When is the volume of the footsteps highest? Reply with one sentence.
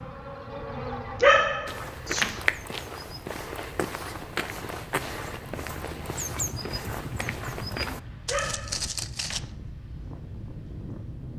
The loudest moment of the footsteps is at 2 seconds.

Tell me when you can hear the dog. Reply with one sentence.
The dog can be heard from 1.2 to 2.4 s and from 8.2 to 9.4 s.